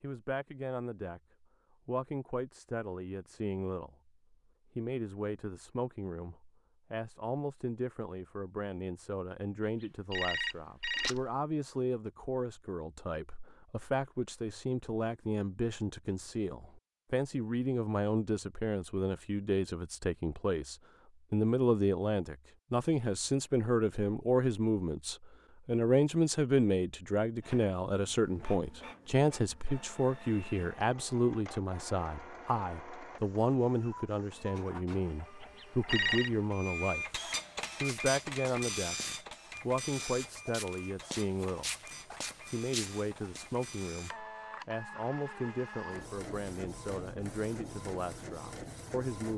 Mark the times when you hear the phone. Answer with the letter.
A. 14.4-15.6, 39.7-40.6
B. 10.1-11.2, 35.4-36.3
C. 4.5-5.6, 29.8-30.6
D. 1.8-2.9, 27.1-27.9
B.